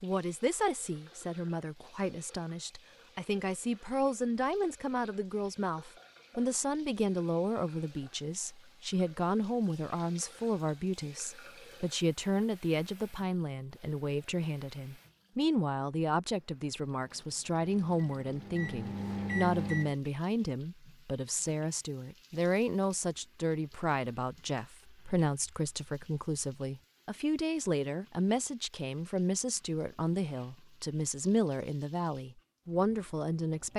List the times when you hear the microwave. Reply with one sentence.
You can hear the microwave from 17.6 to 19.9 s.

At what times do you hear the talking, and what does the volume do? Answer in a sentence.
You can hear the talking from 0.0 to 33.7 s, at a steady volume.